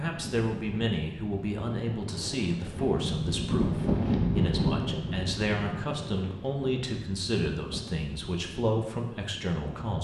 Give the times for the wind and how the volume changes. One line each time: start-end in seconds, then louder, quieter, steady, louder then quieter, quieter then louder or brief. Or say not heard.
0.0-10.0 louder then quieter.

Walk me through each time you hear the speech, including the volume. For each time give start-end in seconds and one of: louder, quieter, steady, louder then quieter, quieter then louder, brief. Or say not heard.
0.0-10.0 steady.